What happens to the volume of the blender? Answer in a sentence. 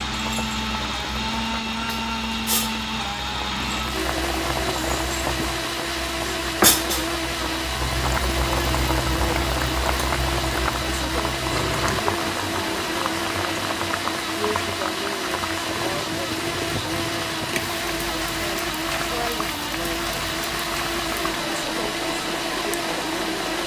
The volume of the blender stays about the same.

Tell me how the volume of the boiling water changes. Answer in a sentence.
The volume of the boiling water goes up, then down.